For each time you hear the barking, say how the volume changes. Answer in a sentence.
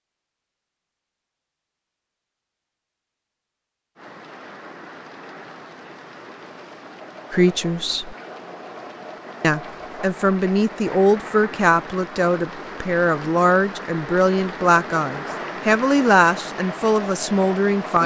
You can't hear the barking here.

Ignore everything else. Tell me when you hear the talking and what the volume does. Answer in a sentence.
The talking can be heard briefly from 7.3 to 8.2 s; and from 9.4 to 18.0 s, at a steady volume.